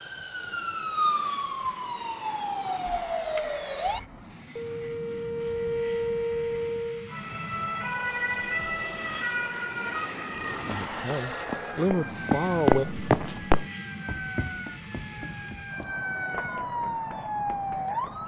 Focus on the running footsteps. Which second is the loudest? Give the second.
13 s.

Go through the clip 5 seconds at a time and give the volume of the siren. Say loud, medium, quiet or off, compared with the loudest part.
loud, loud, medium, loud.